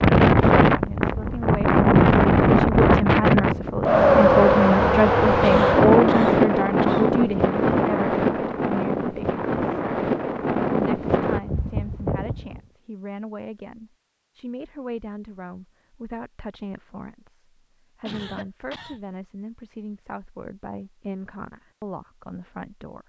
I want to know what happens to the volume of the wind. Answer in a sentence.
The loudness of the wind goes down.